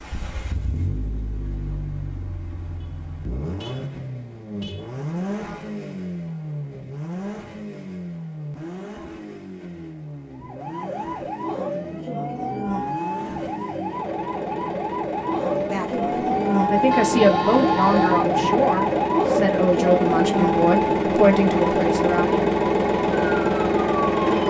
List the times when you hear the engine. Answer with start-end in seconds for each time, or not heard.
0.0-24.4.